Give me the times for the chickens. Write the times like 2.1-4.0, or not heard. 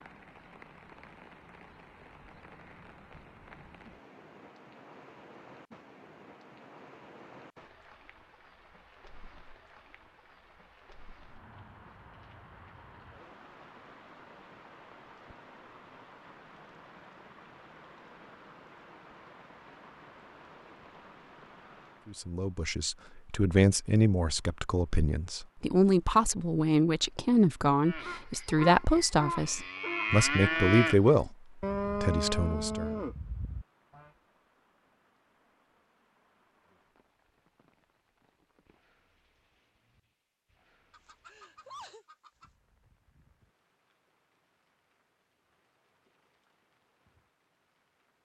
40.9-42.5.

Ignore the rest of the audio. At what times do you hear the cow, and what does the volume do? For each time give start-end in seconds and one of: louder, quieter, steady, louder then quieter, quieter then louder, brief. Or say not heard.
27.8-34.0 louder then quieter.